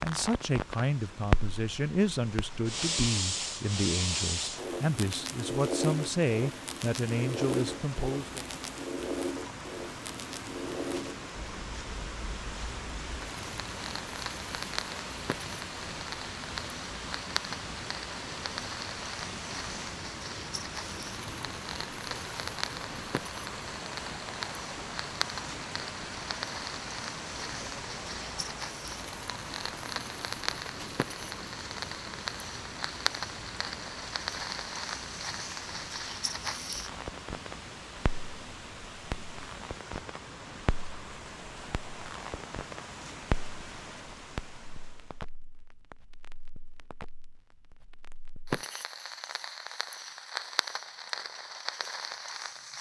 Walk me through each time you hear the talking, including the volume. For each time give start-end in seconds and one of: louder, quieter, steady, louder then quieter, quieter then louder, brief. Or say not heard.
0.0-8.4 steady.